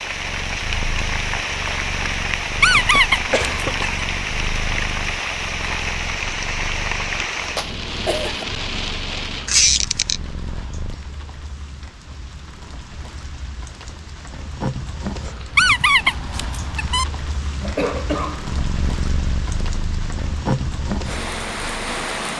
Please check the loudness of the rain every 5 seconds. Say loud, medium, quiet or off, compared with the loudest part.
loud, loud, medium, medium, loud.